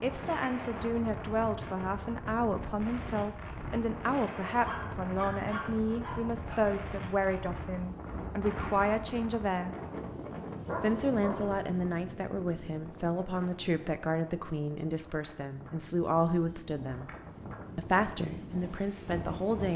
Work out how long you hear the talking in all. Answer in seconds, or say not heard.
18 s.